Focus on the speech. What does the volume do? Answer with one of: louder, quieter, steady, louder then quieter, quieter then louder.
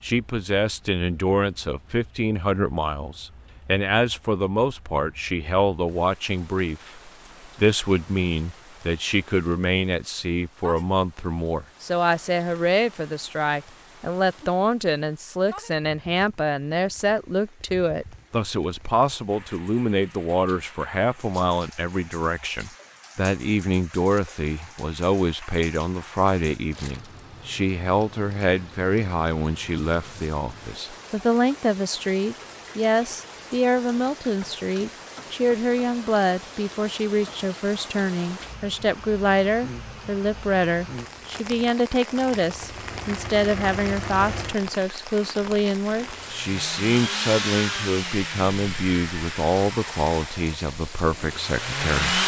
steady.